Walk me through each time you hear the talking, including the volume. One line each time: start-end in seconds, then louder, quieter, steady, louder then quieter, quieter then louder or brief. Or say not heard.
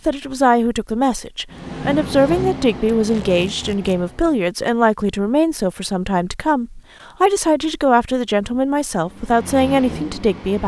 0.1-10.6 steady.